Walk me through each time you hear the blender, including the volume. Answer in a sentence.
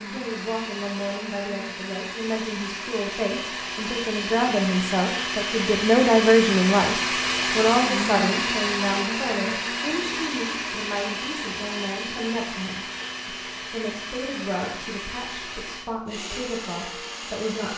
You can hear the blender from 0.0 to 17.7 s, getting louder then quieter.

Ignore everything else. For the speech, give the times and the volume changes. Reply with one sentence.
The speech can be heard from 0.0 to 17.7 s, getting louder then quieter.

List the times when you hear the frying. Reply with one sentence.
You can't hear the frying here.